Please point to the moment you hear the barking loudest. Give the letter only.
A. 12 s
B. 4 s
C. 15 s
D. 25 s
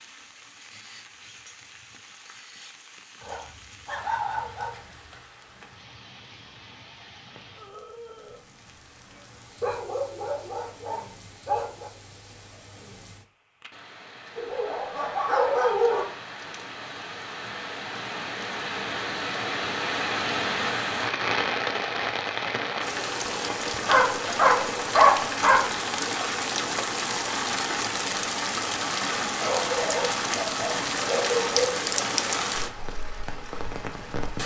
D.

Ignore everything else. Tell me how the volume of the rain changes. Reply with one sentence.
The loudness of the rain goes up.